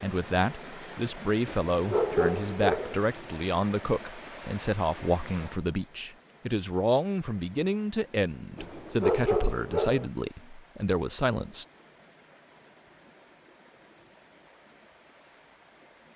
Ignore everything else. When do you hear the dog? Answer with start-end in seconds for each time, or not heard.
1.4-3.0, 8.6-10.1.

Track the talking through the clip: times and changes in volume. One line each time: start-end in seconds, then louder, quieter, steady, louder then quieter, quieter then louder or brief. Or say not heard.
0.0-11.7 steady.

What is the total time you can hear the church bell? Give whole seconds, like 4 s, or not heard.
not heard.